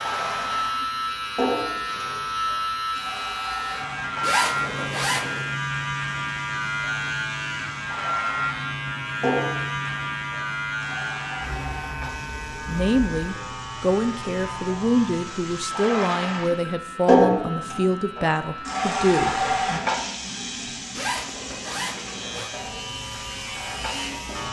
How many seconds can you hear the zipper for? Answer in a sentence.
You can hear the zipper for 3 seconds altogether.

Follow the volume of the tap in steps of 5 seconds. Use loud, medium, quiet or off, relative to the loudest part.
medium, medium, quiet, loud, quiet.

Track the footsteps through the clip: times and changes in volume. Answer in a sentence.
You can't hear the footsteps here.